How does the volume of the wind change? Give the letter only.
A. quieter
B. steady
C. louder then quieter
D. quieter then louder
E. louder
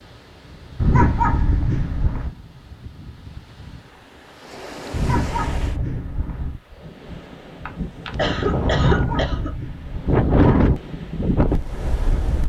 E.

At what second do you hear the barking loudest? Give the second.
1 s.